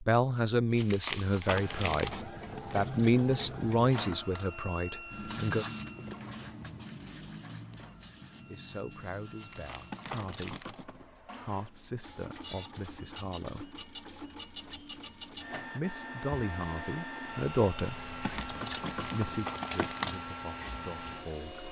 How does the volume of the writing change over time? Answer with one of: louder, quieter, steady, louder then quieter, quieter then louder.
quieter.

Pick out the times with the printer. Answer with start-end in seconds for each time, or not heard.
1.4-21.6.